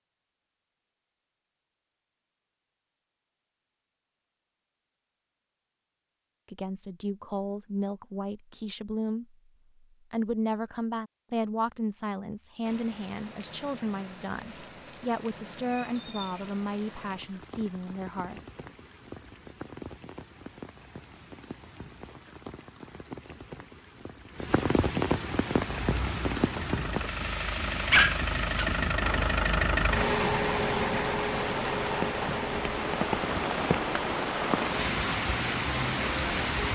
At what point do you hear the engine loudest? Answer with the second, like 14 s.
30 s.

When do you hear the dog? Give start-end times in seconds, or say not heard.
27.9-28.7.